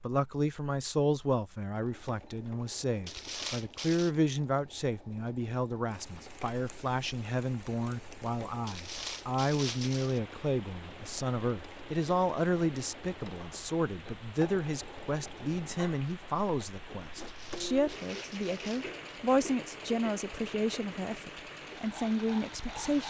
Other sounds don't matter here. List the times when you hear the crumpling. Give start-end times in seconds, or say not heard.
3.0-4.1, 8.7-10.2, 17.1-18.9.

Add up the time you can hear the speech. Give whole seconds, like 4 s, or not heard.
23 s.